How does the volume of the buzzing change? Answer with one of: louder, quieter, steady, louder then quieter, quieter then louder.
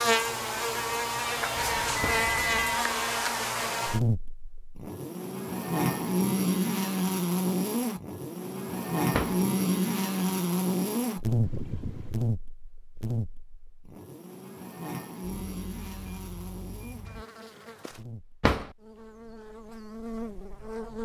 quieter.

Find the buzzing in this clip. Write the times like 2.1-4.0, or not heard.
0.0-21.0.